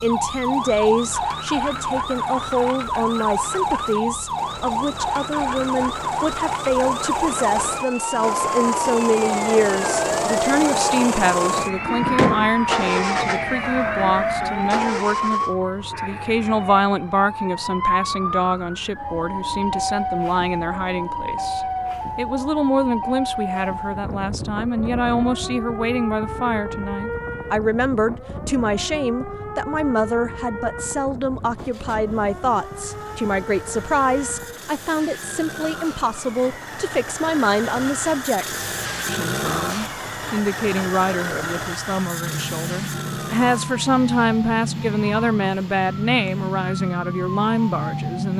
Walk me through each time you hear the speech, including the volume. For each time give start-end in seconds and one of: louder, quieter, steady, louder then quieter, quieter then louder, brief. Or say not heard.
0.0-48.3 steady.